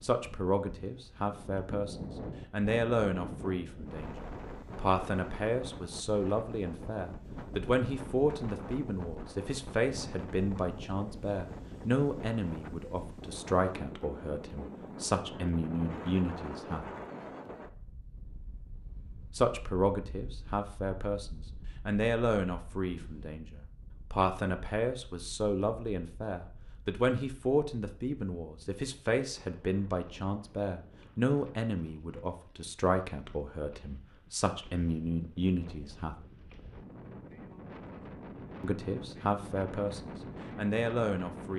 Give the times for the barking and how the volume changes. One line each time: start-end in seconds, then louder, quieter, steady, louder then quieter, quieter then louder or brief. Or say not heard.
not heard.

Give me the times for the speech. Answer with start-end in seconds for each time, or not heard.
0.0-16.9, 19.4-36.1, 38.6-41.5.